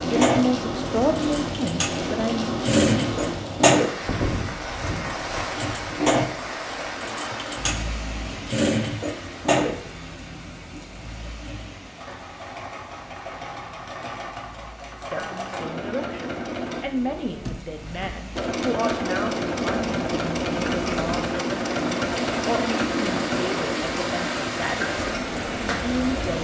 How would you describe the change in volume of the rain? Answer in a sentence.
The volume of the rain goes down, then up.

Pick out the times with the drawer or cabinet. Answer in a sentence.
You can hear the drawer or cabinet from 16.9 to 18.1 s.